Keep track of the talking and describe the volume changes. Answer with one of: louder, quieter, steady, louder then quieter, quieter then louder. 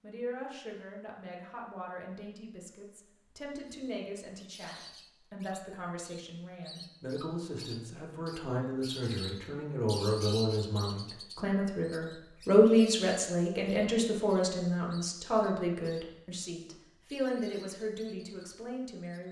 louder then quieter.